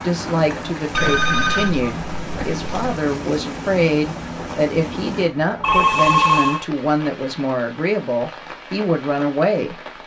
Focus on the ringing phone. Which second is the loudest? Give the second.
6 s.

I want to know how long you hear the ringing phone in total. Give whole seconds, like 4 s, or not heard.
3 s.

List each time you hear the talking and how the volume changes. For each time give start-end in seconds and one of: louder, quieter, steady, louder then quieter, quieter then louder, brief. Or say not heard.
0.0-9.8 steady.